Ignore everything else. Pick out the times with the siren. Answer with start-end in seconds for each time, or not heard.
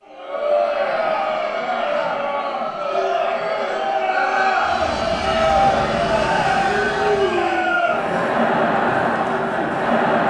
not heard.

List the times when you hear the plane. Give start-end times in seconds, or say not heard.
4.5-7.8.